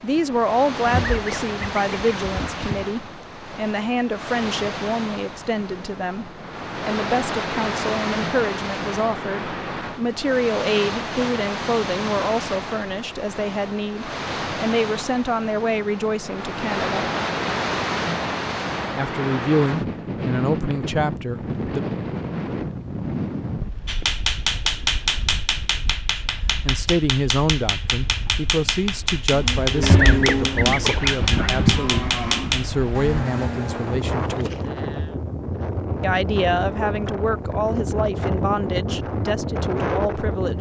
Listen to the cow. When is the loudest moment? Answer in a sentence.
The loudest moment of the cow is at 30 seconds.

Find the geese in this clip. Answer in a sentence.
You can hear the geese from 0.8 to 2.9 s and from 29.8 to 31.9 s.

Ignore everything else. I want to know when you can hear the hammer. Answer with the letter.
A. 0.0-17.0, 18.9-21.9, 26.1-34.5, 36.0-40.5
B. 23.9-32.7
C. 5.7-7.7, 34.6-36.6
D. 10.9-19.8
B.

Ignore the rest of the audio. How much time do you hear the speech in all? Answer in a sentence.
The speech can be heard for 33 seconds in total.